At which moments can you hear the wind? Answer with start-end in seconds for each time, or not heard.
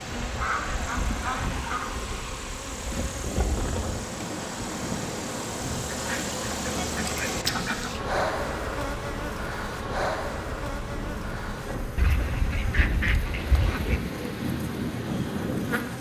0.0-15.9.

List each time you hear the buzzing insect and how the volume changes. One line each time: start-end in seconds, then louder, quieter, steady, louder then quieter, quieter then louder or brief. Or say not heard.
0.0-15.9 louder then quieter.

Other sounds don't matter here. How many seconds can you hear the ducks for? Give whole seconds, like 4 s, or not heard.
6 s.